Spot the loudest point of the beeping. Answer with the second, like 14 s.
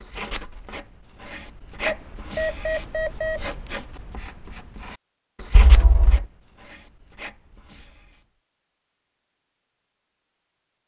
3 s.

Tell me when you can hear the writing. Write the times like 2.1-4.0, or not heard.
0.0-8.2.